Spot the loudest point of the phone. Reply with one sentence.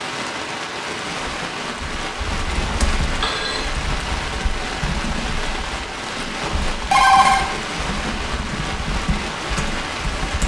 The loudest moment of the phone is at 7 seconds.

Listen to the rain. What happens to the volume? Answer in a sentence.
The loudness of the rain stays about the same.